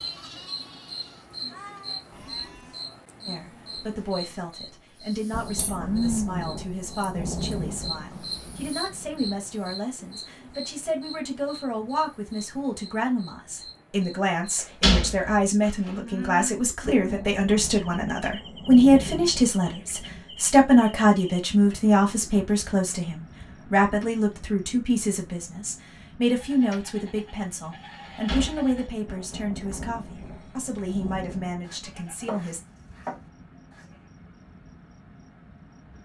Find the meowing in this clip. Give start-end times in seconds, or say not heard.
not heard.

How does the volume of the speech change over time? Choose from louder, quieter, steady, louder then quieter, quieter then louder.
louder then quieter.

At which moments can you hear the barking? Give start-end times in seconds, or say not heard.
not heard.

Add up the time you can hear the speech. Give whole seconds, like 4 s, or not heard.
29 s.